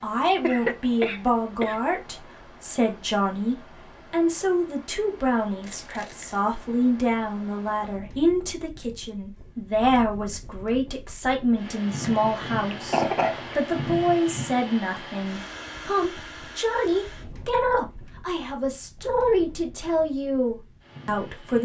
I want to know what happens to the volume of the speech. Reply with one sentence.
The volume of the speech stays about the same.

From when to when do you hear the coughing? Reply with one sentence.
The coughing can be heard from 0.4 to 1.8 s and from 12.0 to 13.6 s.